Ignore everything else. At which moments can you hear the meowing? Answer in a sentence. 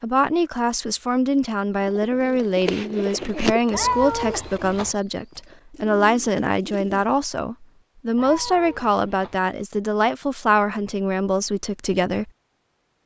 The meowing can be heard from 3.7 to 5.0 s and from 8.2 to 9.4 s.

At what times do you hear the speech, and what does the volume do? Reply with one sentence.
The speech can be heard from 0.0 to 12.3 s, at a steady volume.